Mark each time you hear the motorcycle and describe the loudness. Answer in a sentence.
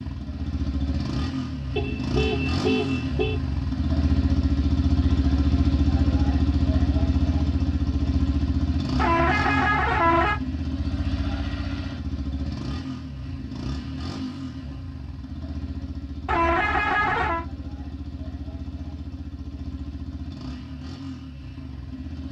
You can hear the motorcycle from 0.0 to 22.2 s, getting quieter.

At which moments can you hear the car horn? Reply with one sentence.
The car horn can be heard from 1.8 to 3.4 s, from 8.9 to 10.4 s and from 16.2 to 17.4 s.